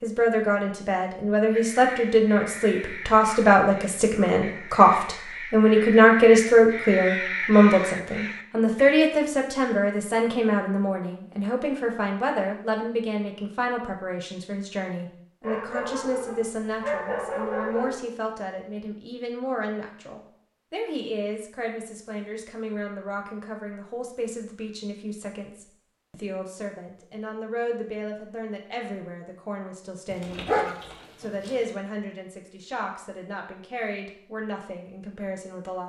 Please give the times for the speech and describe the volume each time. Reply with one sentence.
You can hear the speech from 0.0 to 35.8 s, getting quieter.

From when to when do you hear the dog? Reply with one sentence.
You can hear the dog from 3.0 to 4.4 s, from 15.4 to 18.0 s and from 30.1 to 31.6 s.